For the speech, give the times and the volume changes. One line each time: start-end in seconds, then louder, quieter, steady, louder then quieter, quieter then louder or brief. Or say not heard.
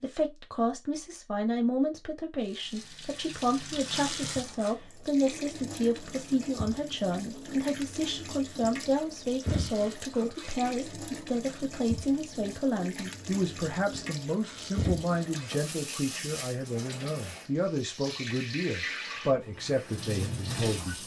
0.0-21.0 steady.